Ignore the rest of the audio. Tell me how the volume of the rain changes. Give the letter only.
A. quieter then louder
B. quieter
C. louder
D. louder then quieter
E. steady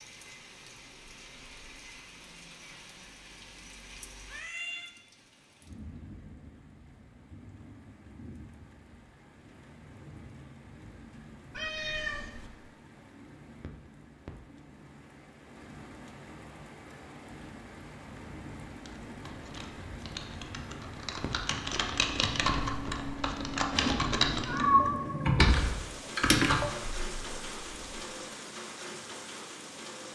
C.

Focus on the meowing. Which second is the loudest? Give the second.
25 s.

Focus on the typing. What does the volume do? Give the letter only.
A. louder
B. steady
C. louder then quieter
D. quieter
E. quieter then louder
A.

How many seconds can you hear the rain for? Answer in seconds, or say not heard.
30 s.